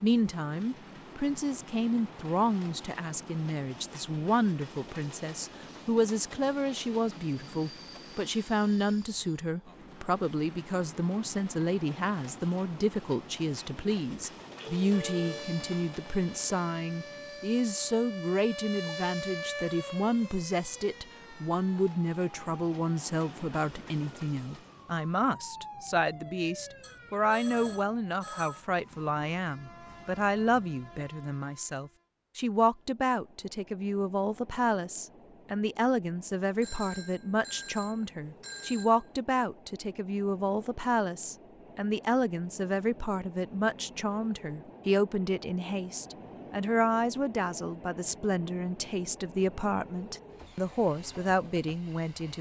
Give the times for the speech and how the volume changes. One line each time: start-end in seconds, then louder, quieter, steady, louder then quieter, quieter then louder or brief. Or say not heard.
0.0-52.3 steady.